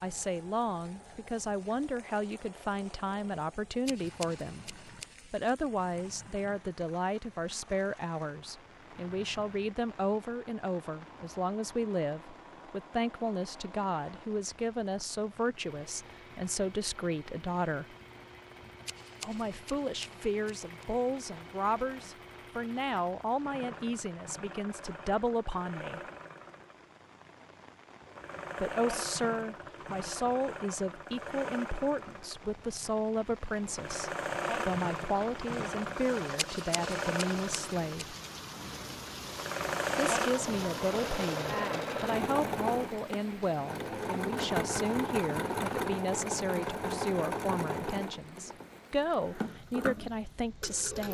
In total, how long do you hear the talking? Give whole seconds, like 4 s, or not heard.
45 s.